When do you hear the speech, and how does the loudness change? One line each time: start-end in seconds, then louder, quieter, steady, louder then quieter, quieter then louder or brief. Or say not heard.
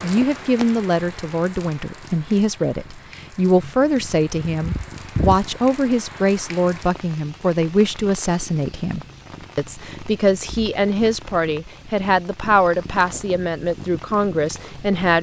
0.0-15.1 steady.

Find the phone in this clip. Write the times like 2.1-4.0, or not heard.
not heard.